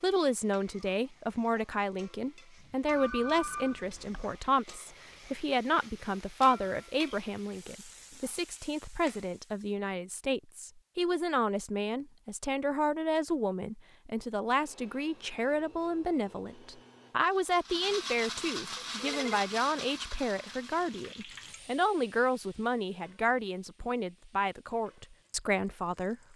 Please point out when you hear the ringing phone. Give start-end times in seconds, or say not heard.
2.9-4.4, 18.9-19.4.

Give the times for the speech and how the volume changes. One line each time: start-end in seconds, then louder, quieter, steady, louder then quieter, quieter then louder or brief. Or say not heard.
0.0-26.1 steady.